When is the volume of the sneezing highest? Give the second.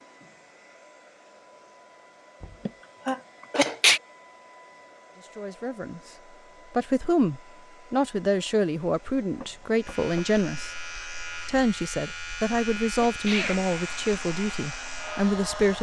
4 s.